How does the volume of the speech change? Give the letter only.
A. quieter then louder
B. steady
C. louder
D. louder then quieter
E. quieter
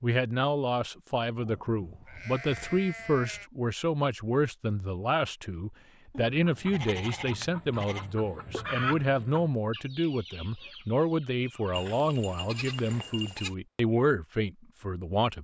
B.